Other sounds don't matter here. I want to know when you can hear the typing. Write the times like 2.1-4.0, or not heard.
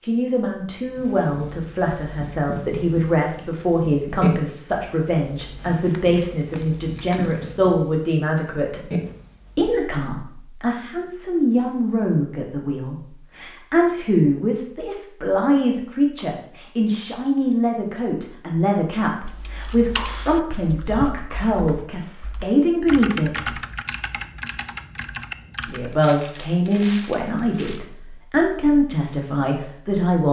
19.2-25.9.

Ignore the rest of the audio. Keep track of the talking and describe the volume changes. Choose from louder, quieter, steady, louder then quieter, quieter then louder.
steady.